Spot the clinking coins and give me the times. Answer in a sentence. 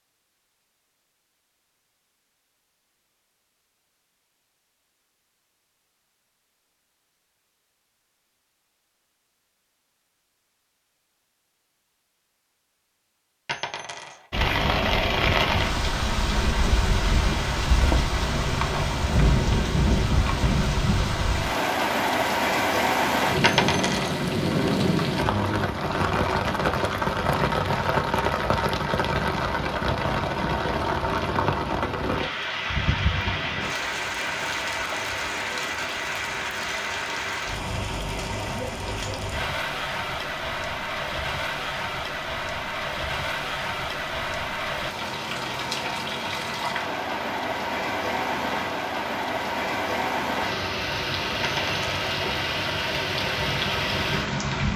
The clinking coins can be heard from 13.4 to 14.2 s, from 23.4 to 24.1 s and from 51.4 to 51.9 s.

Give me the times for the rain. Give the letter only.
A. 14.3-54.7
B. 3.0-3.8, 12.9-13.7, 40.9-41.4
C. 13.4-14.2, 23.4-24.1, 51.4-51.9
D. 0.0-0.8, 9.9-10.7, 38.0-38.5
A.